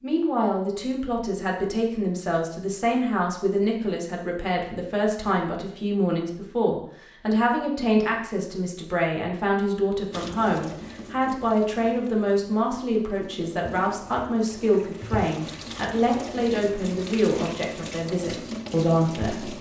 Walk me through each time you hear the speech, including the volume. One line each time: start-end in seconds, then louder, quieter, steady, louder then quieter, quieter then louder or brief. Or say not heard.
0.0-19.5 steady.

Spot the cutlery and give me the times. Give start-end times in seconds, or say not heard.
not heard.